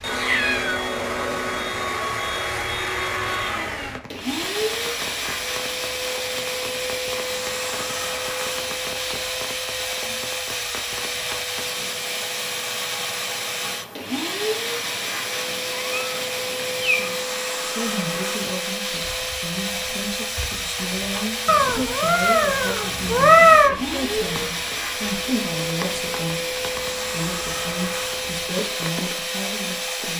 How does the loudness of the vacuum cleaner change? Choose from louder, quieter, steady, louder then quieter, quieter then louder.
steady.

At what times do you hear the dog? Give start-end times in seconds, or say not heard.
not heard.